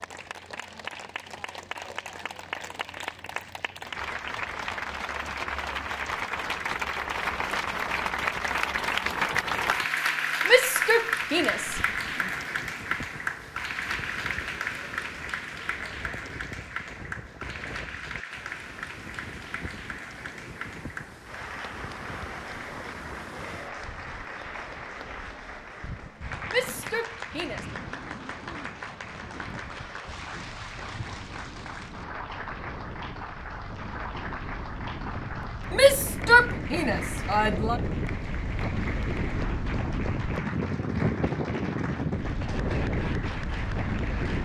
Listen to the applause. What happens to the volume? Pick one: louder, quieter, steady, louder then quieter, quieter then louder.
quieter.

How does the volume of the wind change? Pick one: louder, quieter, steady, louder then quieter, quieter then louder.
louder.